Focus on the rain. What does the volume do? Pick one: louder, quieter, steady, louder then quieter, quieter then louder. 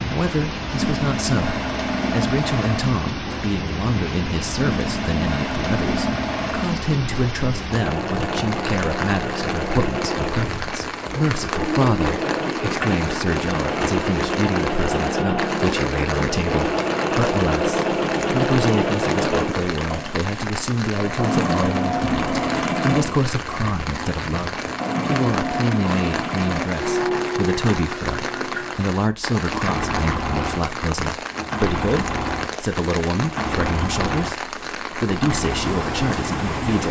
steady.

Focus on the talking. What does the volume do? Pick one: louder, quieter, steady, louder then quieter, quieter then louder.
steady.